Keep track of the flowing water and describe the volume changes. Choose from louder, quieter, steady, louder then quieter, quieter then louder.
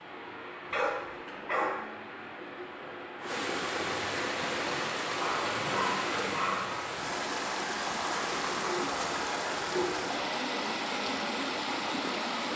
louder.